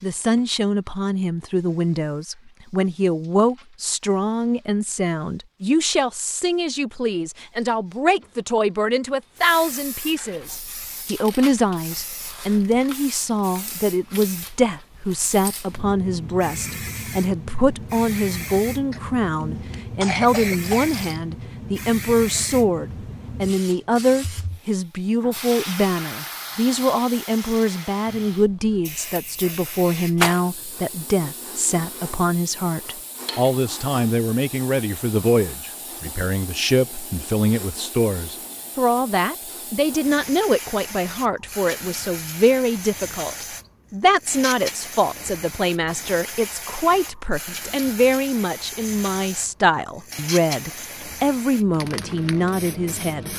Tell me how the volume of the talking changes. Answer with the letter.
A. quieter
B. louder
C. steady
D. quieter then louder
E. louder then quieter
C.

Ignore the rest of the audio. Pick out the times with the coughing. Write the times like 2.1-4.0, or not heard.
18.9-20.9.